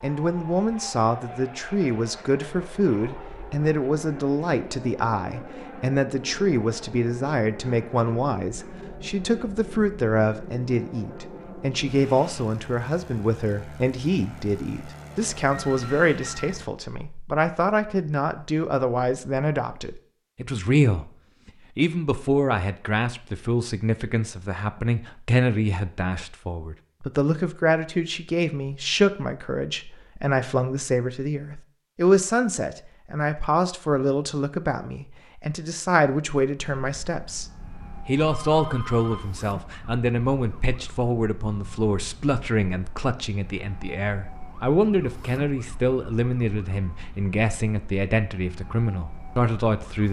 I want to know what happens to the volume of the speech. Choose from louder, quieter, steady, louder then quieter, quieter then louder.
steady.